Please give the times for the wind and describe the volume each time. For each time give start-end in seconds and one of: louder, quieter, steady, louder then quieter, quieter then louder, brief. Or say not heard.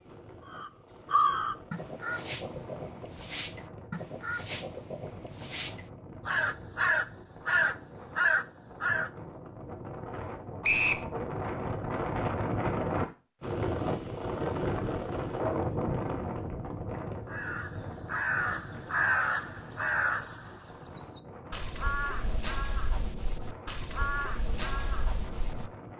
0.0-25.9 louder then quieter.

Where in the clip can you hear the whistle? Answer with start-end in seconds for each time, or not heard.
10.6-11.1.